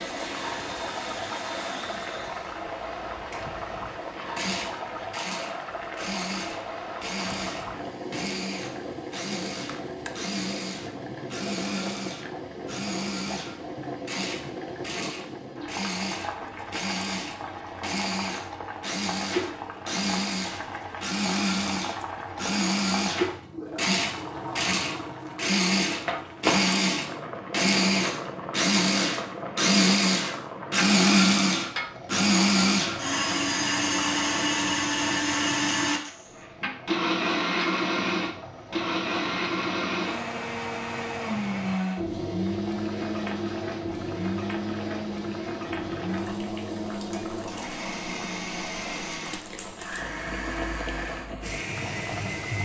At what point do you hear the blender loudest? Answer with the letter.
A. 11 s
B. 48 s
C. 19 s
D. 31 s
D.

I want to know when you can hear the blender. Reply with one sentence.
The blender can be heard from 0.0 to 52.6 s.